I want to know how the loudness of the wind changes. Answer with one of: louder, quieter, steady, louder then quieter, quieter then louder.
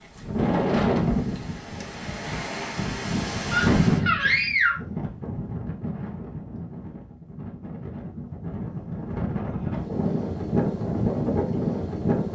quieter then louder.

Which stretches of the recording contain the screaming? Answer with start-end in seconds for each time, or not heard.
3.5-4.8.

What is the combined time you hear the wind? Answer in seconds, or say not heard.
12 s.